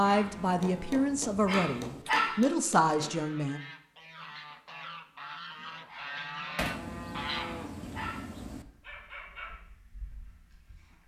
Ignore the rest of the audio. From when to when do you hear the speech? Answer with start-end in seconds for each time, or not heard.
0.0-3.6.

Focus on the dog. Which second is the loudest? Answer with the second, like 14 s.
2 s.